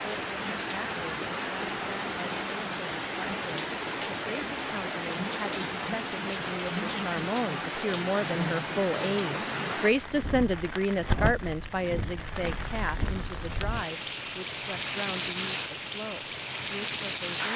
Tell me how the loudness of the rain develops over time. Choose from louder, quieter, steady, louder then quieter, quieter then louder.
steady.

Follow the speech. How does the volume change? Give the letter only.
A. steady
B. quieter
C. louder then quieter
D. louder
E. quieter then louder
C.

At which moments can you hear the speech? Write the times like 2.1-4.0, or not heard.
0.1-17.5.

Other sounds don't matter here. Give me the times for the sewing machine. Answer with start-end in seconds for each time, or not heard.
not heard.